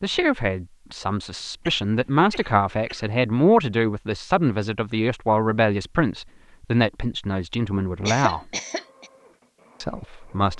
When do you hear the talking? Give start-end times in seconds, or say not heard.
0.0-8.4, 9.8-10.5.